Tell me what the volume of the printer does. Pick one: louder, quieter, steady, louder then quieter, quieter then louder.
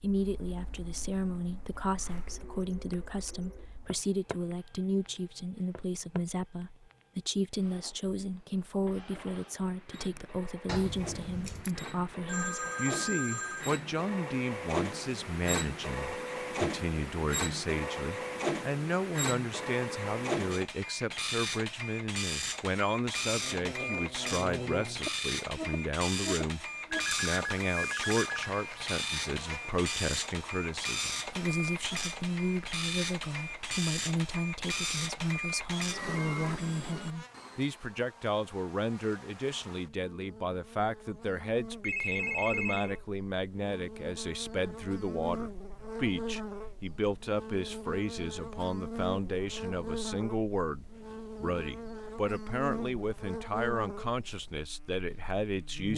louder.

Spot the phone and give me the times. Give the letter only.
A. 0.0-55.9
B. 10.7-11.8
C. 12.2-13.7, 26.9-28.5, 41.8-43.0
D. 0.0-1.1
C.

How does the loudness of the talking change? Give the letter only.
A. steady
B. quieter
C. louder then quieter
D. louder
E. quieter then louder
A.